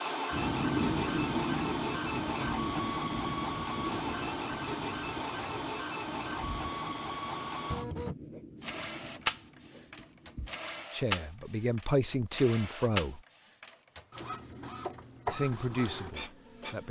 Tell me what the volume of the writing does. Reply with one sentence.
The volume of the writing goes down.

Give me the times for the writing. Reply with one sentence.
You can hear the writing from 0.3 to 10.8 s.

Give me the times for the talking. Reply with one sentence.
The talking can be heard from 10.9 to 13.2 s and from 15.2 to 16.8 s.